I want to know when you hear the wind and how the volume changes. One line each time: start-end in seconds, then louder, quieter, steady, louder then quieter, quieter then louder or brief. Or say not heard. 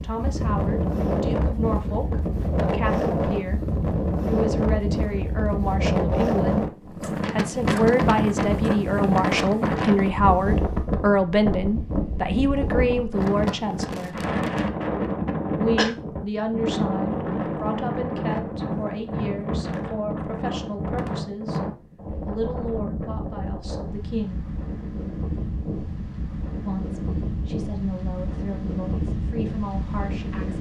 0.0-30.5 quieter.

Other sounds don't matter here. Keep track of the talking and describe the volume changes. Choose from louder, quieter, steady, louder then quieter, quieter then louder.
louder then quieter.